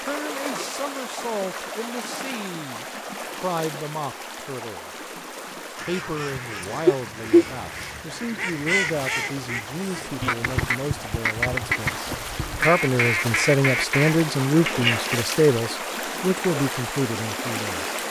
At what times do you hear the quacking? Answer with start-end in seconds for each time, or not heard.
5.8-15.2.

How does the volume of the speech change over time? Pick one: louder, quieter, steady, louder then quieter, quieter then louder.
louder.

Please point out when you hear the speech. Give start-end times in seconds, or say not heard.
0.0-4.9, 5.7-17.9.